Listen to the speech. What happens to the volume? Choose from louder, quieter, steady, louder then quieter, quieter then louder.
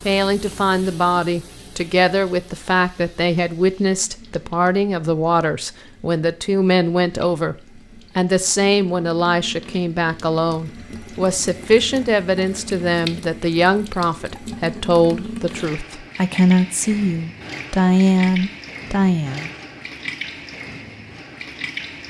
steady.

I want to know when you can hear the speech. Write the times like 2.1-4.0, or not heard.
0.1-7.5, 8.2-19.5.